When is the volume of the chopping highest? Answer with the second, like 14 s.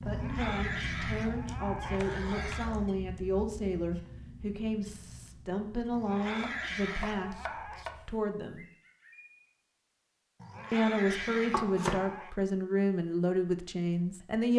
12 s.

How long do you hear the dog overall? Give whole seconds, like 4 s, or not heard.
7 s.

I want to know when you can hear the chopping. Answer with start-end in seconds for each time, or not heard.
1.4-3.2, 6.3-8.1, 11.2-12.2.